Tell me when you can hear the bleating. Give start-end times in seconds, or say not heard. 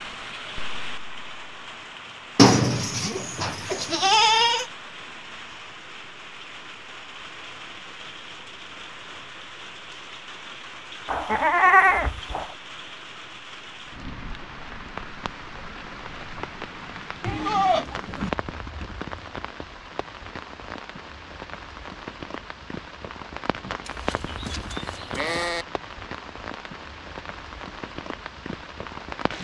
2.4-4.7, 11.1-12.4, 17.2-18.3, 23.9-25.6.